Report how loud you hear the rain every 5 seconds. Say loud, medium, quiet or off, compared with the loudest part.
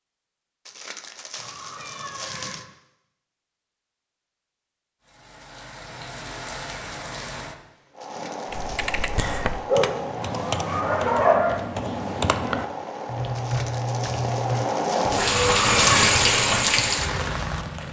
off, quiet, medium, loud.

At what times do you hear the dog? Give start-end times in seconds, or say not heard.
9.7-11.6.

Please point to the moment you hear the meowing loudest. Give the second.
16 s.